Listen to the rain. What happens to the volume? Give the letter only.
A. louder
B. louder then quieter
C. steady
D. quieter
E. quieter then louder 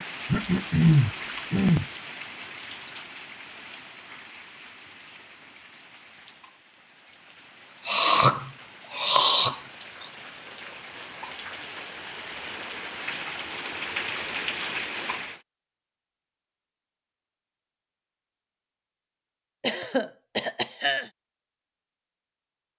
E.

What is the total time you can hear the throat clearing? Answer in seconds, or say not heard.
5 s.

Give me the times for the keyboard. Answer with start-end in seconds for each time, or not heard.
not heard.